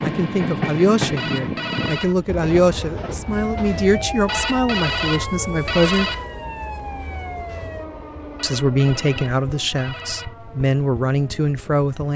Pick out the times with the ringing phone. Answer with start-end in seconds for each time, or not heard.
1.1-2.1, 4.2-6.2, 8.3-10.3.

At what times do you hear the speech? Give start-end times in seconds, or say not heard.
0.0-6.2, 8.4-12.1.